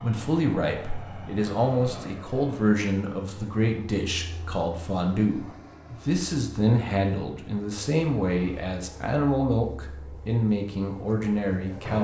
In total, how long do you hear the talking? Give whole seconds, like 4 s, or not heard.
12 s.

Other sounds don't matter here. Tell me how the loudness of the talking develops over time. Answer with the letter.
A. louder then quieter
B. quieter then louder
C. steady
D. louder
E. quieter
C.